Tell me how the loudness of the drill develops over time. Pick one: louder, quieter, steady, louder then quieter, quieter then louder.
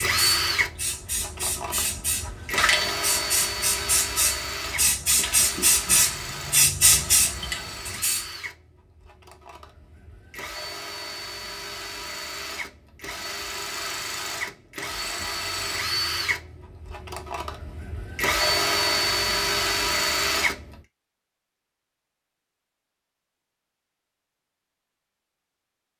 quieter then louder.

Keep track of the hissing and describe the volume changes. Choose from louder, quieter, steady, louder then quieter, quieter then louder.
louder.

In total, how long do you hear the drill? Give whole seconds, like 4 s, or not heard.
21 s.